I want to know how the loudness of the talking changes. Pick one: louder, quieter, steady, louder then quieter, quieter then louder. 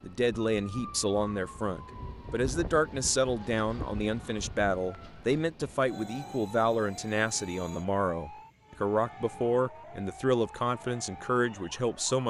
steady.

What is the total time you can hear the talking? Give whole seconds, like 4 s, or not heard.
12 s.